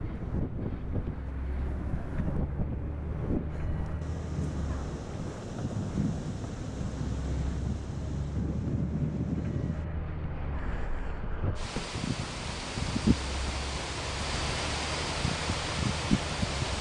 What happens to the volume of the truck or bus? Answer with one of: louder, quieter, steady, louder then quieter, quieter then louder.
steady.